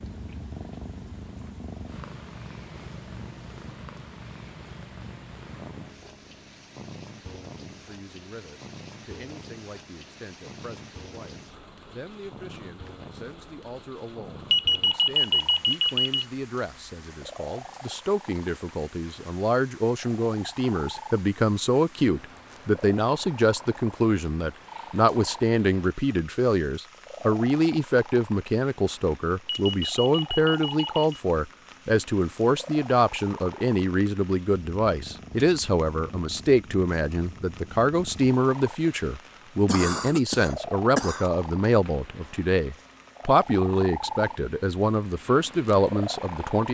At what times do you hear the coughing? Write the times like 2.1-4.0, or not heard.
39.6-41.3.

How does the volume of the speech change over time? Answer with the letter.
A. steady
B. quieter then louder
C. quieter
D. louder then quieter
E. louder
E.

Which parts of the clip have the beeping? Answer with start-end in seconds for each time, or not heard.
14.5-16.2, 29.4-31.2.